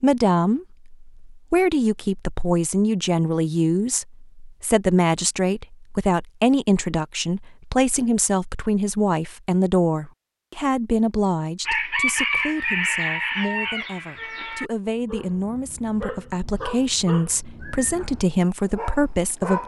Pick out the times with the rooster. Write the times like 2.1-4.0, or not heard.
11.7-14.7.